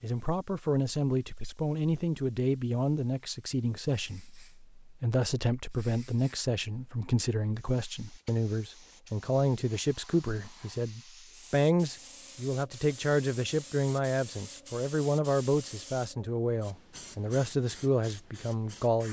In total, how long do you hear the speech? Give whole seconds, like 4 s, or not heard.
19 s.